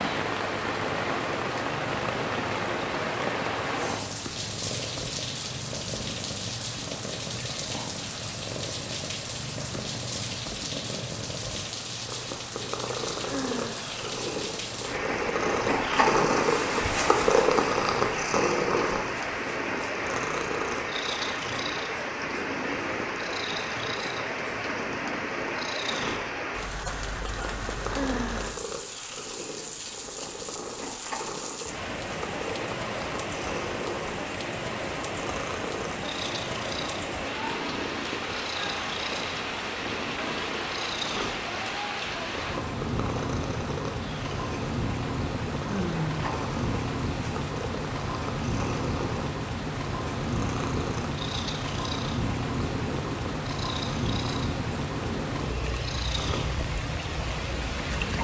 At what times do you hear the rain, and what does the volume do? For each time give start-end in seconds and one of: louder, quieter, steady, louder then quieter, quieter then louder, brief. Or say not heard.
0.0-58.1 steady.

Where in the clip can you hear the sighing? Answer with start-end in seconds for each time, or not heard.
13.2-13.9, 27.9-28.6, 45.6-46.4.